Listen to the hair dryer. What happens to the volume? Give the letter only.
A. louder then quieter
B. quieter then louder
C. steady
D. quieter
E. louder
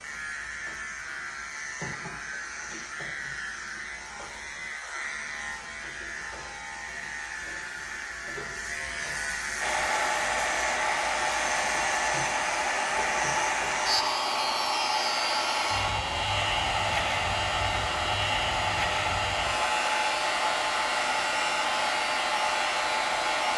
C.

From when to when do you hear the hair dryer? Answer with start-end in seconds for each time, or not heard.
9.6-23.5.